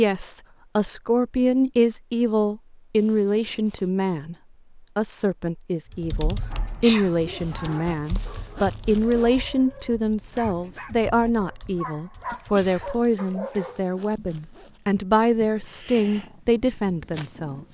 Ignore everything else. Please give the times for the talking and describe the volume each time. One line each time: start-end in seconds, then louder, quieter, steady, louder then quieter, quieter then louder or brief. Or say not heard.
0.0-17.7 steady.